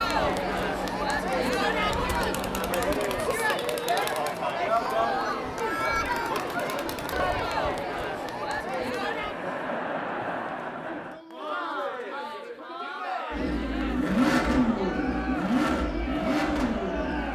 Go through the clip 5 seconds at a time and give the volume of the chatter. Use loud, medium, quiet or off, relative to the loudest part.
loud, loud, medium, medium.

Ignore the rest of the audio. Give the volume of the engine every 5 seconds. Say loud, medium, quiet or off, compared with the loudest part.
quiet, off, loud, loud.